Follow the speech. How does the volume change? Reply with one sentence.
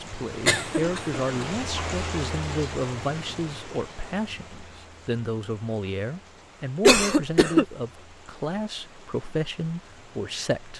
The loudness of the speech stays about the same.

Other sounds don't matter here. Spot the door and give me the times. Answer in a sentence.
The door can't be heard in this clip.